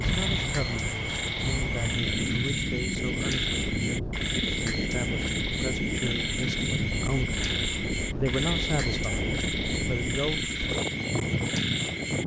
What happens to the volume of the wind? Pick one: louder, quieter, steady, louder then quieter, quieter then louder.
steady.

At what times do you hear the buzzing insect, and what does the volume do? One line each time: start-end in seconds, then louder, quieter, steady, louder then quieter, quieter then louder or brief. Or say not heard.
not heard.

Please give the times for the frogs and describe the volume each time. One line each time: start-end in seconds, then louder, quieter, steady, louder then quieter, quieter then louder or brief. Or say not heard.
0.0-12.2 steady.